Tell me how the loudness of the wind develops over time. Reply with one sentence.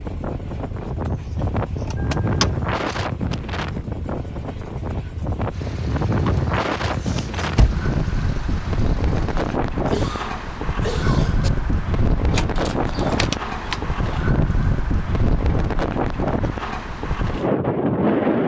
The volume of the wind stays about the same.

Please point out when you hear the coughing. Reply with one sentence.
The coughing can be heard from 9.8 to 11.5 s.